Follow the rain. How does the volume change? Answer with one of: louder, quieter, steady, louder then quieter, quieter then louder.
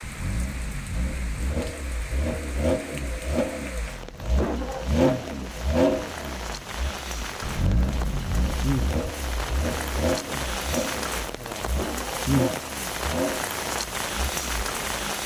louder.